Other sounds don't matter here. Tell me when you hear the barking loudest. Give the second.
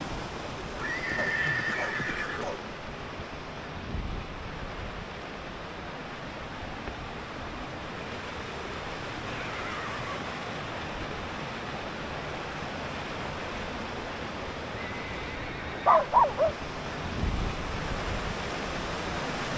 16 s.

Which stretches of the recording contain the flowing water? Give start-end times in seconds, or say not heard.
0.0-19.5.